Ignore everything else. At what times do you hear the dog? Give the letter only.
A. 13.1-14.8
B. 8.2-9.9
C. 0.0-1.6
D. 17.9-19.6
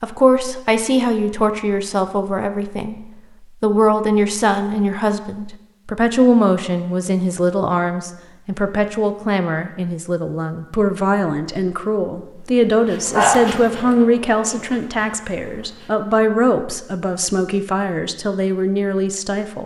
A.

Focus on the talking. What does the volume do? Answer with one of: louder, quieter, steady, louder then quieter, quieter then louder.
steady.